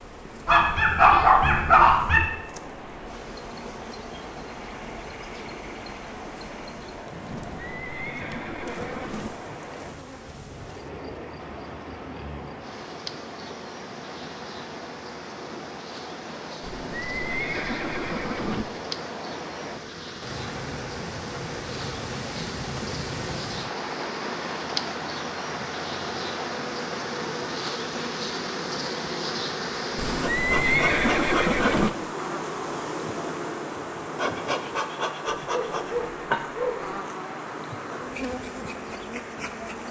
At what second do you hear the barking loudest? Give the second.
1 s.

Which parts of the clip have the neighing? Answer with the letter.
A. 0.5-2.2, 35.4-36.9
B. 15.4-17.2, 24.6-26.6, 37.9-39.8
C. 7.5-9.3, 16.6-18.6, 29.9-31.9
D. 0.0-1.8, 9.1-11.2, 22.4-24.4
C.